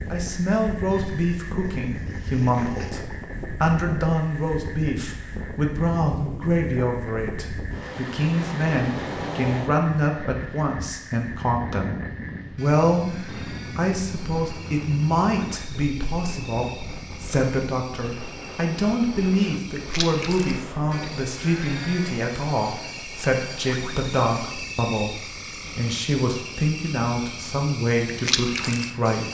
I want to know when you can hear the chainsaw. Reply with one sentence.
You can't hear the chainsaw here.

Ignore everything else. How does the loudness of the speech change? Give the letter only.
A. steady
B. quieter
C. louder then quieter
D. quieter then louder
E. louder
A.